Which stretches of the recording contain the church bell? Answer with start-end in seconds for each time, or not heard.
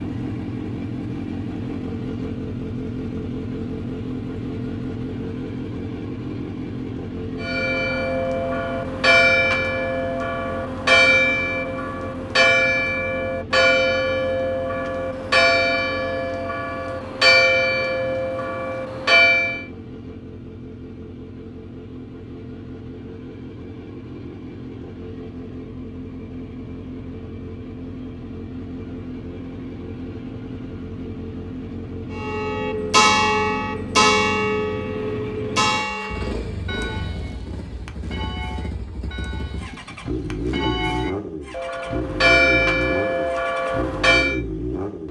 7.4-19.6, 32.1-44.4.